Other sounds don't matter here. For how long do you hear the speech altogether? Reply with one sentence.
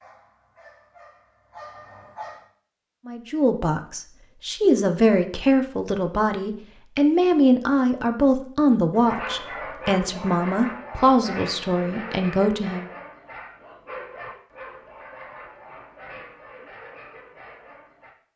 You can hear the speech for 10 seconds altogether.